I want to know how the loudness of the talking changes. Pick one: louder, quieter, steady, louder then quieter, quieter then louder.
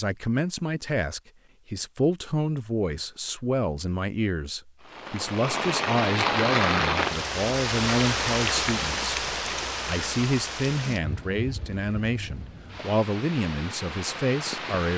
steady.